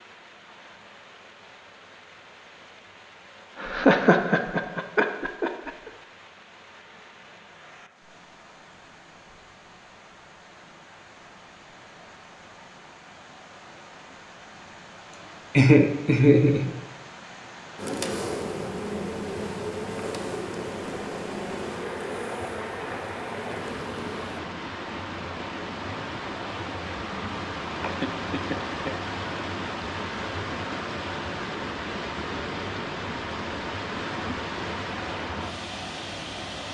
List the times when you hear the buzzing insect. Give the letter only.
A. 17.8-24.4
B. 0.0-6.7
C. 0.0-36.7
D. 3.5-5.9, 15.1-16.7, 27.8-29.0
A.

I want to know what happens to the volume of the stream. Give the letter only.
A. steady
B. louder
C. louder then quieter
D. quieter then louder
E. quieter
B.